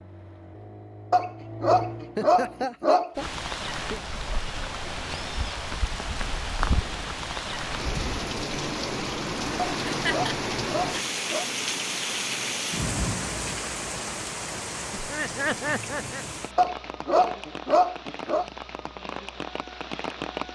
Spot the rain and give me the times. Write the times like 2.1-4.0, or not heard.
3.1-20.5.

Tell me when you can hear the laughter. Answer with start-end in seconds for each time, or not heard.
2.1-4.0, 9.7-11.1, 14.9-16.2.